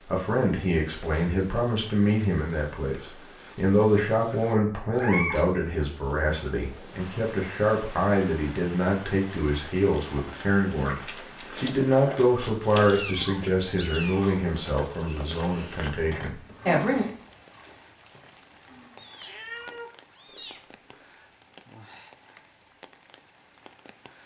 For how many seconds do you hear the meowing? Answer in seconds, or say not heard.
4 s.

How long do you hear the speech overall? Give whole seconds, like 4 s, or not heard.
17 s.